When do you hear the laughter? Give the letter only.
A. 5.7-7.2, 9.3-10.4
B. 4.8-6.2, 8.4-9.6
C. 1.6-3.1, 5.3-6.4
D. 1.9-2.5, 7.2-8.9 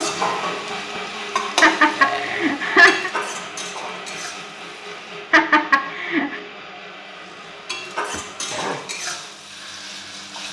C.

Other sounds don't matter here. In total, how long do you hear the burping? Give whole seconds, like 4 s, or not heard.
2 s.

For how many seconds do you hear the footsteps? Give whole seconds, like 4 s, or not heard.
not heard.